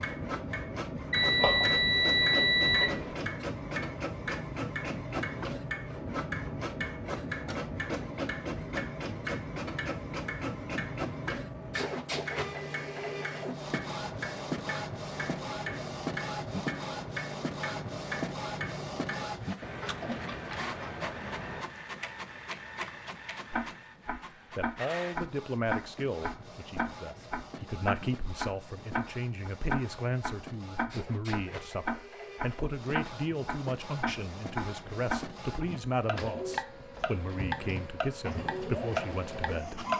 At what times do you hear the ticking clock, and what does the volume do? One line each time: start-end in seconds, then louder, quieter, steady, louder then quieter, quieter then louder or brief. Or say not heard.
0.0-39.9 louder.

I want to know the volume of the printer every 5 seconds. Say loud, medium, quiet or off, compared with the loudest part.
loud, loud, loud, loud, medium, medium, medium, loud.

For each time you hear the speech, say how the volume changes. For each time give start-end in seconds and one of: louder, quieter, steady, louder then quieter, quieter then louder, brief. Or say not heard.
24.6-39.9 steady.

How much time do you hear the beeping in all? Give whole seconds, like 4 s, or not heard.
2 s.